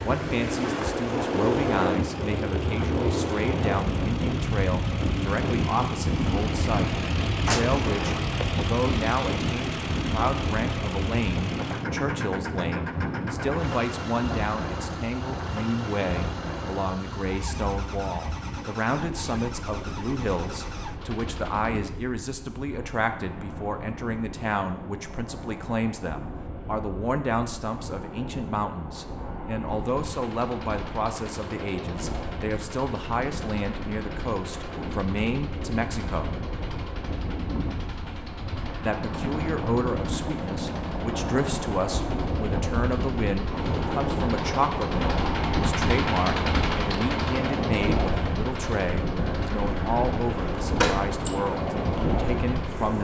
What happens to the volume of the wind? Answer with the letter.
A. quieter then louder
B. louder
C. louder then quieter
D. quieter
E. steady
A.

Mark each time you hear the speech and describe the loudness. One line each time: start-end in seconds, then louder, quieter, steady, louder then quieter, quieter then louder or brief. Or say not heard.
0.0-36.5 steady
38.8-52.9 steady.